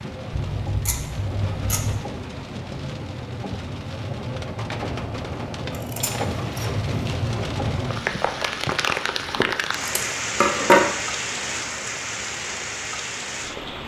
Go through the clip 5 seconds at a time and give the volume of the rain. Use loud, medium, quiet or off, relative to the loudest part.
medium, loud, loud.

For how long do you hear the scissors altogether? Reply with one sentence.
The scissors can be heard for 5 seconds in total.